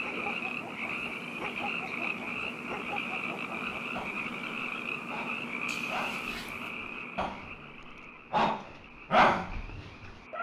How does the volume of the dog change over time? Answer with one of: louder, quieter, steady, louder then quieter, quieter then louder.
louder.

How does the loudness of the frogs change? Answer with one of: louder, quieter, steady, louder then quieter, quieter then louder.
quieter.